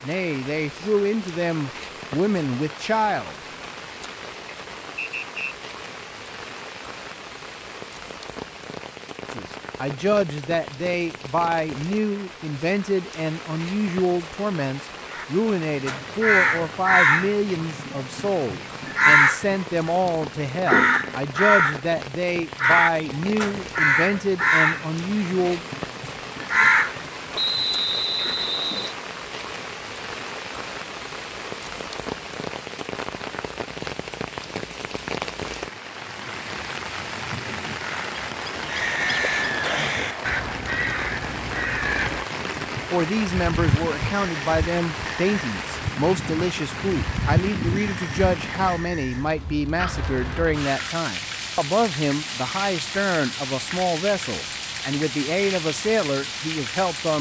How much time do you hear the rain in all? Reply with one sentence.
You can hear the rain for 57 seconds altogether.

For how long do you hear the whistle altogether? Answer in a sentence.
You can hear the whistle for 4 seconds altogether.